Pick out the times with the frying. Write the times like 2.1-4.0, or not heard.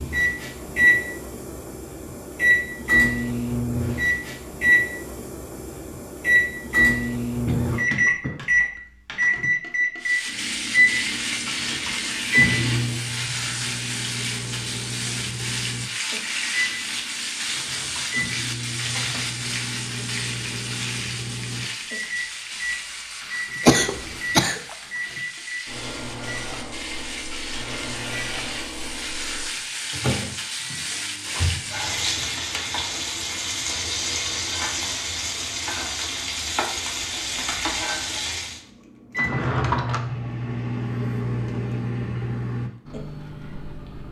10.0-38.6.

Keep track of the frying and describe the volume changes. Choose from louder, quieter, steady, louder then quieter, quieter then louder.
quieter then louder.